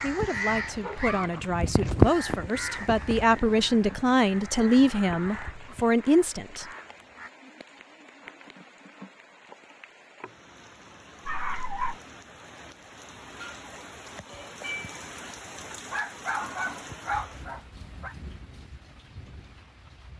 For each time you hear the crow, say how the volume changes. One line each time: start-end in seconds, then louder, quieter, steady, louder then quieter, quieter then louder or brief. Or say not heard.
0.0-7.3 louder then quieter.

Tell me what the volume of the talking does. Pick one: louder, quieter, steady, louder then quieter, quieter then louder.
louder.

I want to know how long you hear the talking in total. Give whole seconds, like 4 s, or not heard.
7 s.